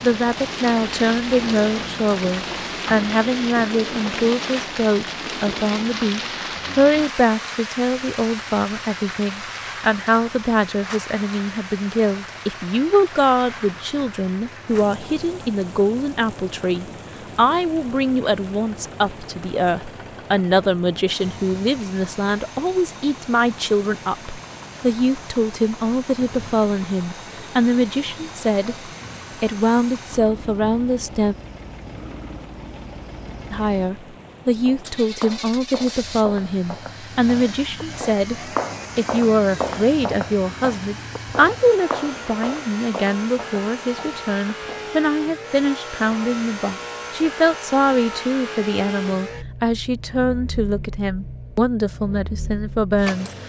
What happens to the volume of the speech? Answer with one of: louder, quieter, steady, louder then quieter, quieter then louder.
steady.